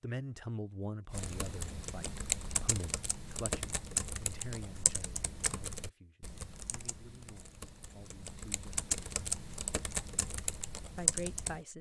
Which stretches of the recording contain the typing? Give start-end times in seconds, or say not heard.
1.1-11.7.